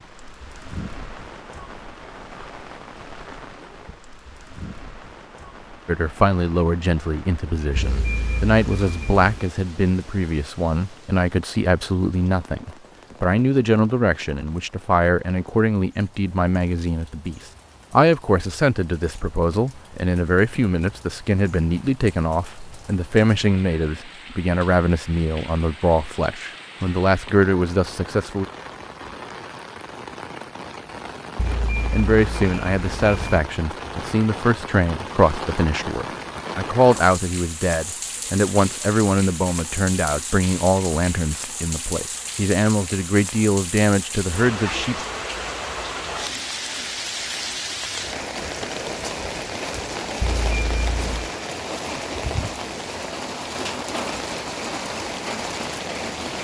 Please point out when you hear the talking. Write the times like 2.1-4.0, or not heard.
5.8-28.4, 31.9-45.0.